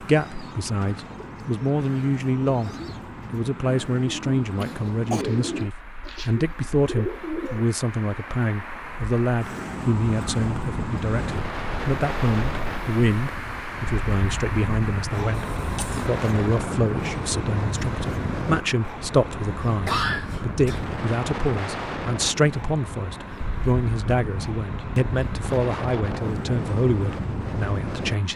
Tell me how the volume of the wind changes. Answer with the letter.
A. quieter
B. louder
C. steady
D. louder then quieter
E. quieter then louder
C.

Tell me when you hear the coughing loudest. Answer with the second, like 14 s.
20 s.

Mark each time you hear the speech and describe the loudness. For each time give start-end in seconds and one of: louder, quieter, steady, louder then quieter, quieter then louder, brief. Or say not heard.
0.0-2.7 brief
3.3-28.3 steady.